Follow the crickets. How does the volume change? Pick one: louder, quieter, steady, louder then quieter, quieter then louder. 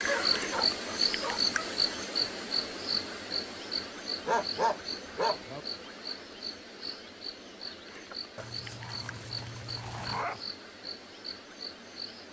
quieter.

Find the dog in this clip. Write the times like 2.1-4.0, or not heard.
0.1-1.9, 4.2-5.6, 8.3-10.4.